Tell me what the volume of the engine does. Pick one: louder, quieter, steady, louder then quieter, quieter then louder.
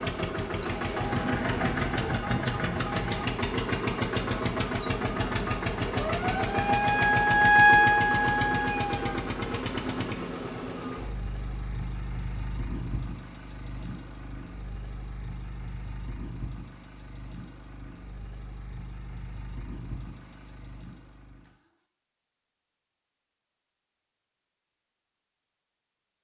quieter.